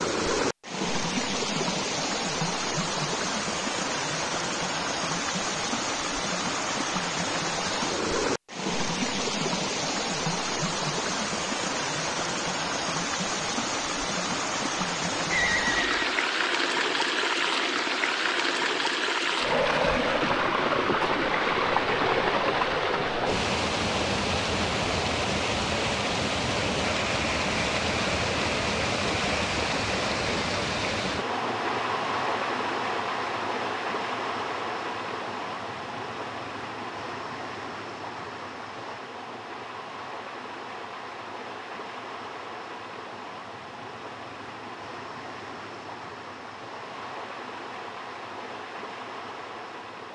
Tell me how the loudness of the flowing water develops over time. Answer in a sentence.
The volume of the flowing water goes down.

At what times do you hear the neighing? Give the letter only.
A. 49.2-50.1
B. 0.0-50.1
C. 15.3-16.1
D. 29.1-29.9
C.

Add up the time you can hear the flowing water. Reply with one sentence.
The flowing water can be heard for 50 seconds in total.